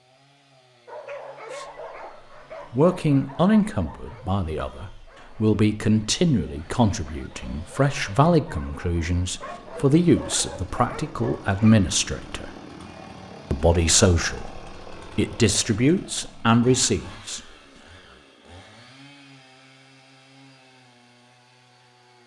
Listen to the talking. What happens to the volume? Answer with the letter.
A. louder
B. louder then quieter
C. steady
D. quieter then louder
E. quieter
C.